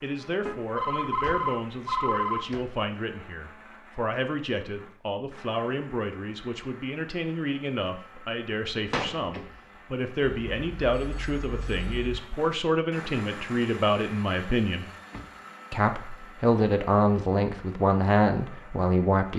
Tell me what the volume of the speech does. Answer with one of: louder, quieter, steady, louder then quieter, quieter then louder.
louder.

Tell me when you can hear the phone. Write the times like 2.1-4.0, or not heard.
0.5-2.5, 10.4-12.2.